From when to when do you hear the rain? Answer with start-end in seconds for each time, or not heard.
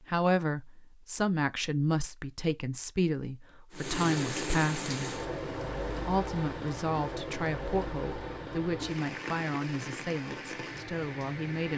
3.7-11.7.